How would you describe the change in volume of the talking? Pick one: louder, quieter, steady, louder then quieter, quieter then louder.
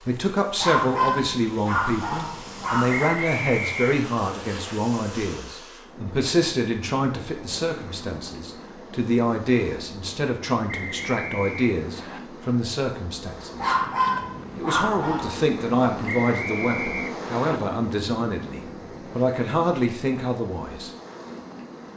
steady.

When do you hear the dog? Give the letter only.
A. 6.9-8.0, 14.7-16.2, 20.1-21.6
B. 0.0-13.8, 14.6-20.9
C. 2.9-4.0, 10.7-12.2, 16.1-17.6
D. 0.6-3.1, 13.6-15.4
D.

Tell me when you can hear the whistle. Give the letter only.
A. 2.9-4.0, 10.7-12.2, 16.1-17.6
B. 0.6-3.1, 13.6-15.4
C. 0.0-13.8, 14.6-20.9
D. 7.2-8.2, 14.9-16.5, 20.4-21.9
A.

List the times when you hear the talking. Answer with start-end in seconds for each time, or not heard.
0.0-13.8, 14.6-20.9.